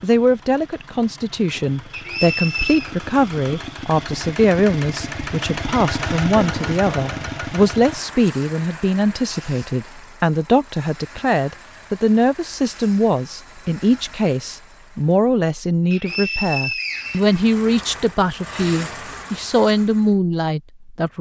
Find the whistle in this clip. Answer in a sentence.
You can hear the whistle from 1.9 to 2.9 s and from 15.9 to 17.9 s.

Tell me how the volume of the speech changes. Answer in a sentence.
The volume of the speech stays about the same.